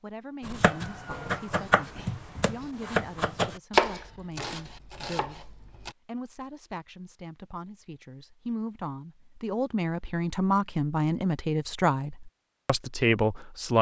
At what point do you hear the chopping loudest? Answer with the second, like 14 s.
4 s.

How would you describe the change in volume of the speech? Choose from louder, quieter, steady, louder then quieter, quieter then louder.
louder.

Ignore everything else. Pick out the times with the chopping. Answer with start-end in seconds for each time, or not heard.
0.4-5.9.